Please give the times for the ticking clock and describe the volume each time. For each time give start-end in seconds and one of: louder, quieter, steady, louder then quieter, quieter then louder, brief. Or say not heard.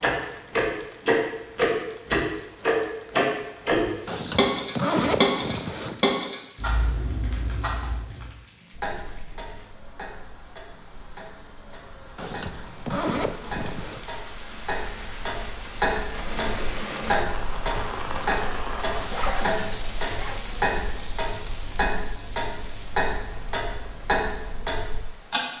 0.0-25.4 quieter then louder.